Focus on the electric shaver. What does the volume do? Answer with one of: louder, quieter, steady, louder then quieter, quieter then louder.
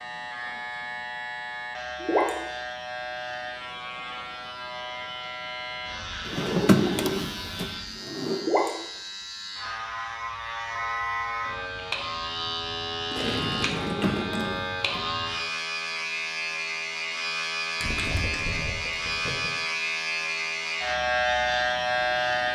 louder.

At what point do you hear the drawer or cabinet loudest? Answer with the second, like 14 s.
7 s.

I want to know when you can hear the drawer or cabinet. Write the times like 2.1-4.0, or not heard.
6.2-8.5, 13.7-15.1.